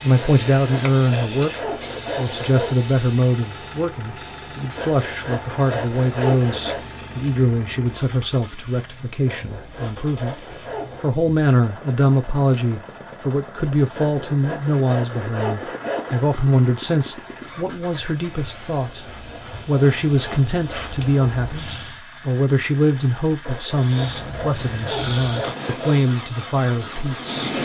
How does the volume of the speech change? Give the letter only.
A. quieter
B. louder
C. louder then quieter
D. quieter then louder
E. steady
E.